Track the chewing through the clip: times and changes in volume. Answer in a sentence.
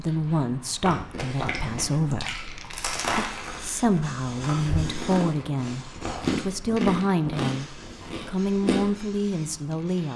You can hear the chewing from 0.8 to 9.0 s, getting louder then quieter.